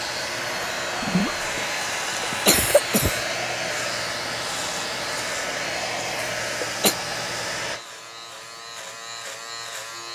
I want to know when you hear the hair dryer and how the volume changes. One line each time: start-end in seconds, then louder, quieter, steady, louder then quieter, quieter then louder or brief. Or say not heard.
0.0-10.1 quieter.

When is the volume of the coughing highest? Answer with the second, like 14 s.
3 s.